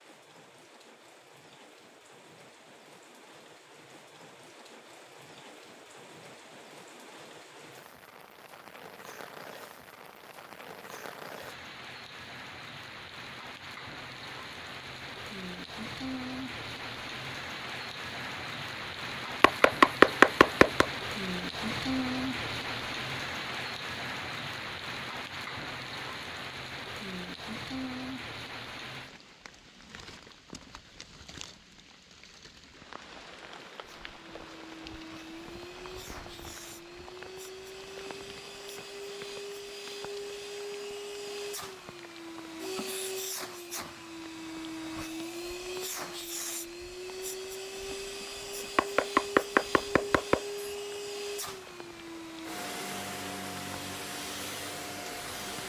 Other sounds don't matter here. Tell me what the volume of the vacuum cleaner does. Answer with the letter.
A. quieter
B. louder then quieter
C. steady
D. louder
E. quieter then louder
D.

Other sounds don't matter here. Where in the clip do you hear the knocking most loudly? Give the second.
20 s.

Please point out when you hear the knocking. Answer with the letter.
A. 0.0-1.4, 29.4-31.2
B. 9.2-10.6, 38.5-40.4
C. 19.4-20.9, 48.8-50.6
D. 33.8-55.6
C.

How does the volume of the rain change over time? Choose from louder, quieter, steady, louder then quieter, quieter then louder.
louder then quieter.